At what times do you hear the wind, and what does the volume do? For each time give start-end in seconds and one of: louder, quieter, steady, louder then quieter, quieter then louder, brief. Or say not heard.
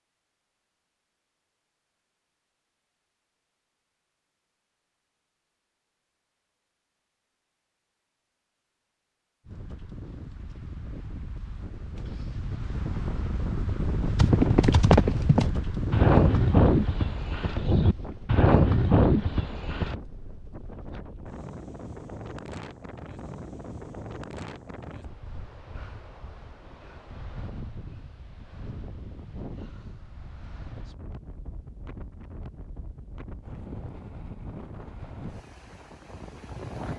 9.4-36.9 quieter.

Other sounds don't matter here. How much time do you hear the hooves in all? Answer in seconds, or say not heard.
6 s.